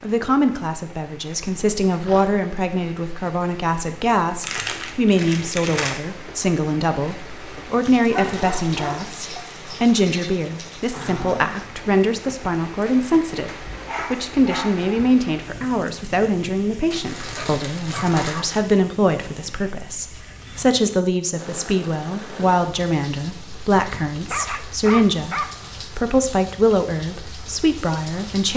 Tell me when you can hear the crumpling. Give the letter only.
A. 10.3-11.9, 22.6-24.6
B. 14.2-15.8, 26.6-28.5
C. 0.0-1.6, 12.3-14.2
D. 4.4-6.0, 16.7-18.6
D.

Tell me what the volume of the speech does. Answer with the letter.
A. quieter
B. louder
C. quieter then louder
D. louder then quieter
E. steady
E.